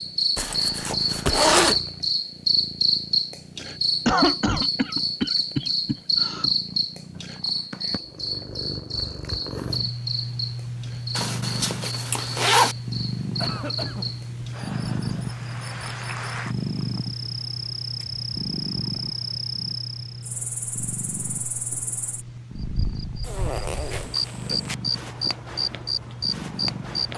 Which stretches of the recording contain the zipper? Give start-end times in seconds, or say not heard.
0.3-1.8, 11.2-12.8, 23.2-24.8.